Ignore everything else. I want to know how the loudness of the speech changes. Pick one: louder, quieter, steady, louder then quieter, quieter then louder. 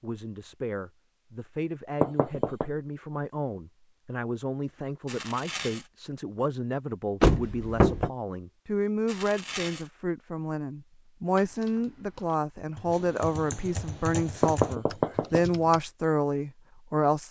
louder.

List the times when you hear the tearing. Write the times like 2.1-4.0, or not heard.
5.0-5.9, 9.1-9.9.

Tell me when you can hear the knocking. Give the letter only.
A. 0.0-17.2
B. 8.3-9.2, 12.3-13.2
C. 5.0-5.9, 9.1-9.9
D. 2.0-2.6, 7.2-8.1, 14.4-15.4
D.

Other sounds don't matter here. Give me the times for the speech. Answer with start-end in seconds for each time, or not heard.
0.0-17.2.